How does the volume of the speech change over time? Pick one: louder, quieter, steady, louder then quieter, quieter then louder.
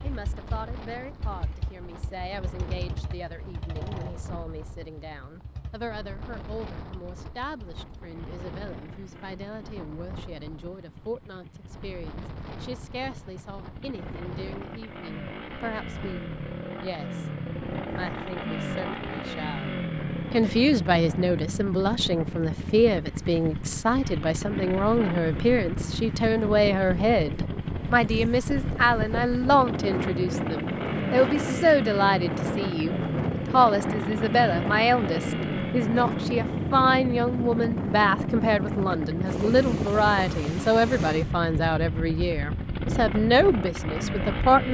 louder.